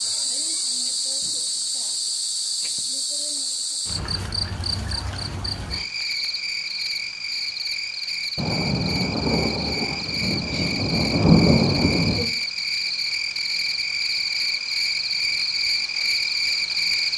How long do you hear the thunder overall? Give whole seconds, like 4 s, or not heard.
4 s.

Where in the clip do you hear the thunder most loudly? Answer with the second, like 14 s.
11 s.